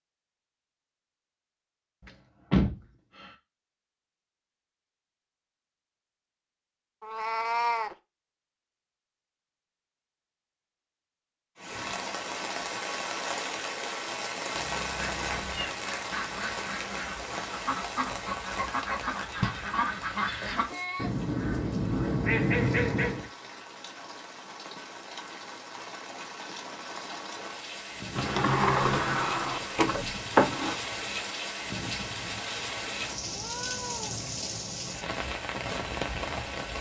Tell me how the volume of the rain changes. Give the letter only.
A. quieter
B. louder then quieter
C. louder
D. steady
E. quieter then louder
E.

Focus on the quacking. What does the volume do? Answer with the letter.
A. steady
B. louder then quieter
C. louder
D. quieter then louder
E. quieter
C.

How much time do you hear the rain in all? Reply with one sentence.
The rain can be heard for 25 seconds in total.